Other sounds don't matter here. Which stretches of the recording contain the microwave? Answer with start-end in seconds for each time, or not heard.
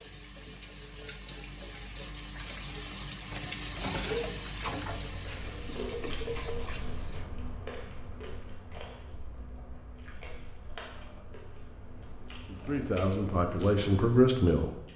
not heard.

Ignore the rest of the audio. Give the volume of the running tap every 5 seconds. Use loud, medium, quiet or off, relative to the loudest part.
loud, loud, off.